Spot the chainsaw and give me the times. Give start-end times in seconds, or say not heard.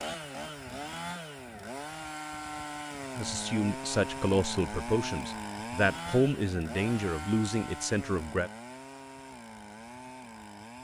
0.0-10.7.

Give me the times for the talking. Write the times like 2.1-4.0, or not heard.
3.1-8.5.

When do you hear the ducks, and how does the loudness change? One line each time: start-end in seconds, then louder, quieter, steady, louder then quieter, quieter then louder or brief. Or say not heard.
not heard.